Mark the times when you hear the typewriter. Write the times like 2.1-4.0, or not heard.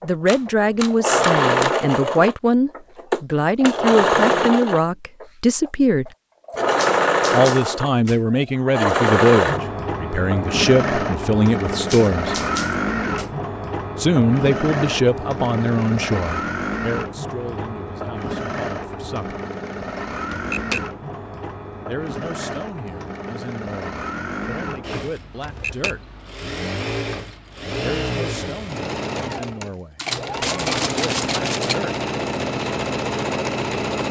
0.2-1.8, 6.8-8.2, 11.8-13.3, 20.3-20.9, 25.4-26.0, 29.9-31.8.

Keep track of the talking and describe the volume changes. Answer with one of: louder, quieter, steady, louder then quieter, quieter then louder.
quieter.